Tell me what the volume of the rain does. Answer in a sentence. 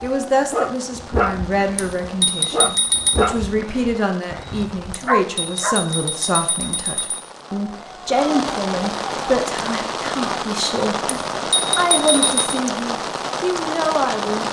The volume of the rain goes up.